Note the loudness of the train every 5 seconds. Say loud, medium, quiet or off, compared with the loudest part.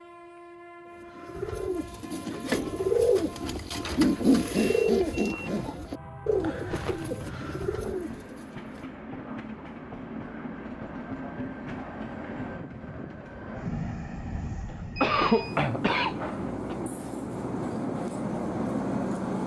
quiet, medium, medium, loud.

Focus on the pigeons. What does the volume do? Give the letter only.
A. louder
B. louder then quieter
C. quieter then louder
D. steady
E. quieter
B.